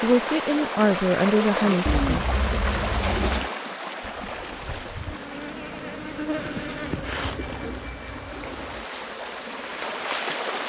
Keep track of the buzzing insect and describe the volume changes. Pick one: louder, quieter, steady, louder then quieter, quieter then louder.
louder then quieter.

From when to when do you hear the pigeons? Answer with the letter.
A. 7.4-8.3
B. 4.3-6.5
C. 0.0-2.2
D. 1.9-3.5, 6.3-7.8
D.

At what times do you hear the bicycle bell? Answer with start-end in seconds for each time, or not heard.
7.4-8.3.